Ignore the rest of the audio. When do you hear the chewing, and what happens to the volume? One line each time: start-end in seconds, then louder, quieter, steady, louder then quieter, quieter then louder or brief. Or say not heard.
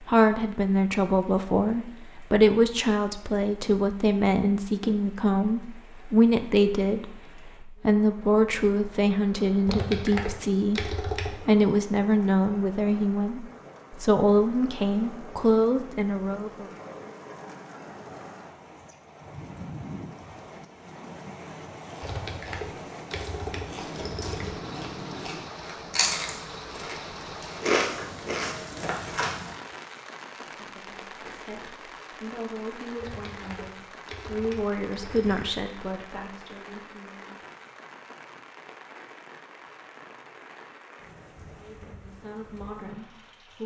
21.4-29.3 louder.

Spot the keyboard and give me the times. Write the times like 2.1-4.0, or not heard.
9.7-11.7, 22.0-24.6, 33.0-35.5.